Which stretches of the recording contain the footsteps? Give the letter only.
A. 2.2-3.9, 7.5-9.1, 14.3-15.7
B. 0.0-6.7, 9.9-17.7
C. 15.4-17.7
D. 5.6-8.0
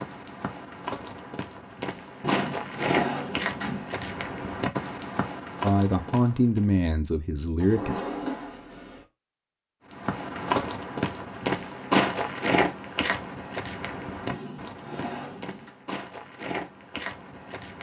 B.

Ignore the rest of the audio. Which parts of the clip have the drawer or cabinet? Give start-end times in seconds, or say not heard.
2.2-3.9, 7.5-9.1, 14.3-15.7.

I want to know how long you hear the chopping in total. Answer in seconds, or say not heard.
not heard.